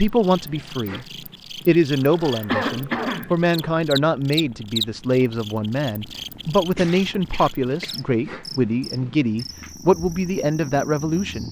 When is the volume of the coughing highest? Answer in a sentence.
The loudest moment of the coughing is at 3 seconds.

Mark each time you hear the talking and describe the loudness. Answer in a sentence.
The talking can be heard briefly from 0.0 to 1.1 s; and from 1.6 to 11.4 s, at a steady volume.